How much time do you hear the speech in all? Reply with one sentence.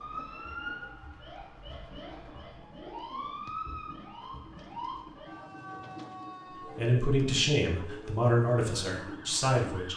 You can hear the speech for 3 seconds altogether.